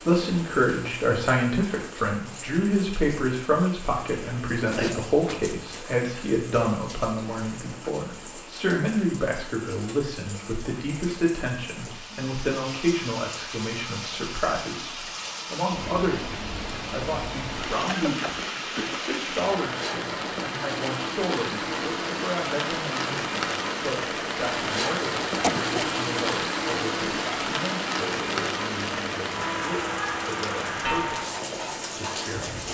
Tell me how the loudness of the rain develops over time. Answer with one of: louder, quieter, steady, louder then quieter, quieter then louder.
louder.